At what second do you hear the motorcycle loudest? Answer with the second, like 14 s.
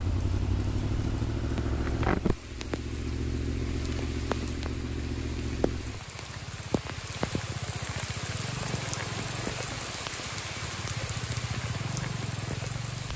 2 s.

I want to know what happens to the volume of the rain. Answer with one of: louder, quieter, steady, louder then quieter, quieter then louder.
louder.